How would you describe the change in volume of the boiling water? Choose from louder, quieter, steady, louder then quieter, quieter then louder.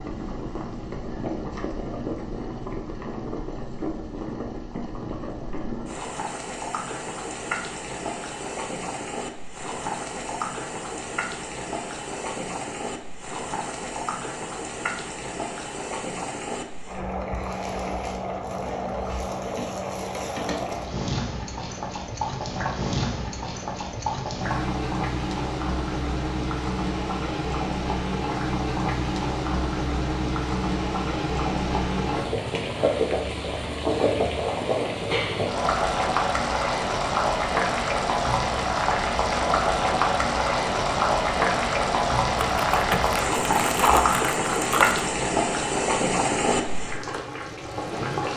louder.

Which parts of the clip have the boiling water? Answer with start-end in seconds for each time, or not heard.
0.0-48.3.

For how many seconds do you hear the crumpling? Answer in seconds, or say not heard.
3 s.